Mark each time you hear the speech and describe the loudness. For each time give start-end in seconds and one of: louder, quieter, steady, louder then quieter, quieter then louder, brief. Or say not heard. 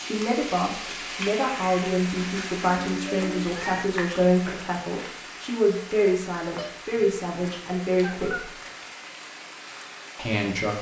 0.0-8.5 steady
10.2-10.7 brief.